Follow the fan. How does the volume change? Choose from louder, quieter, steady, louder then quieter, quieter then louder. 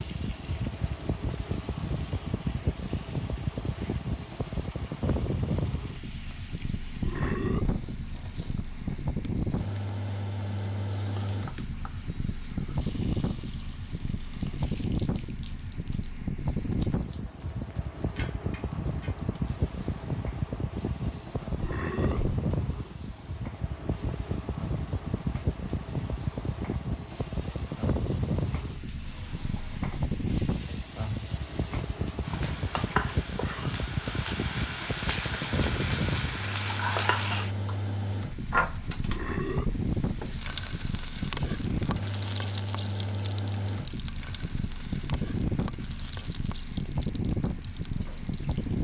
steady.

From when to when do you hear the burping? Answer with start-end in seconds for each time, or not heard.
7.0-7.8, 21.6-22.4, 39.0-39.9.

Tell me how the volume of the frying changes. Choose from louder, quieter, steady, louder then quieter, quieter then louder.
louder then quieter.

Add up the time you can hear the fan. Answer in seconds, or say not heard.
49 s.